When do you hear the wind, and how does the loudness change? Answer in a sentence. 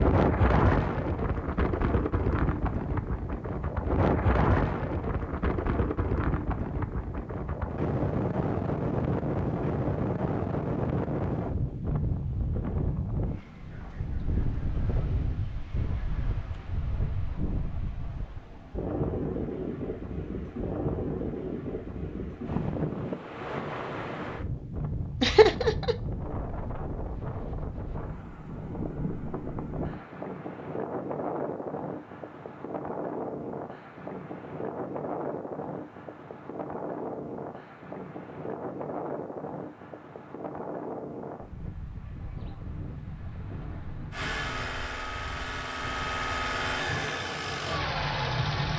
The wind can be heard from 0.0 to 48.7 s, getting quieter.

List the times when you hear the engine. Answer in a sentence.
You can hear the engine from 44.1 to 48.7 s.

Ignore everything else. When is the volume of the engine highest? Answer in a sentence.
The loudest moment of the engine is at 48 seconds.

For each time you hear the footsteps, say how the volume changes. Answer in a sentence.
You can't hear the footsteps here.